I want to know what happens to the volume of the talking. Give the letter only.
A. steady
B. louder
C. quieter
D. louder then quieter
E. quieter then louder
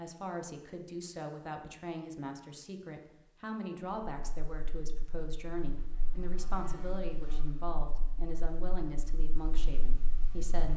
A.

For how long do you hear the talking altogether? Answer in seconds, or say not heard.
11 s.